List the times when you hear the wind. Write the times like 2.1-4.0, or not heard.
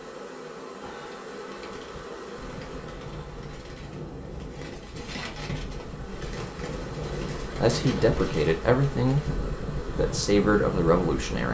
2.4-11.4.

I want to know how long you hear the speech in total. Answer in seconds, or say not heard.
4 s.